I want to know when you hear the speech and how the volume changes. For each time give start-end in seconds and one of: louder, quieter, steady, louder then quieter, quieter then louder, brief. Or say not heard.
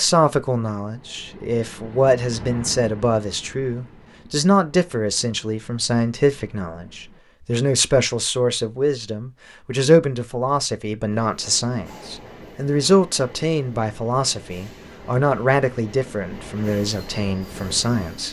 0.0-18.2 steady.